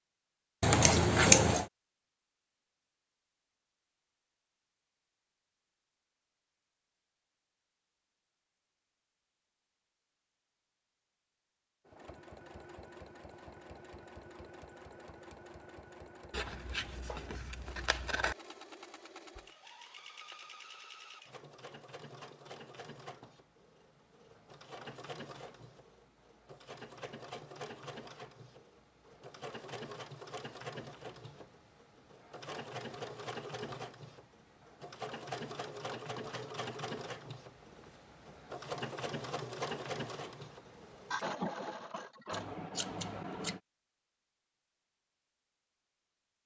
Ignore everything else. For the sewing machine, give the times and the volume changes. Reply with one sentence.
The sewing machine can be heard from 11.8 to 42.5 s, getting louder.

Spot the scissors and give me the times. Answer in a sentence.
You can hear the scissors from 0.6 to 1.6 s, from 16.3 to 18.4 s and from 42.3 to 43.6 s.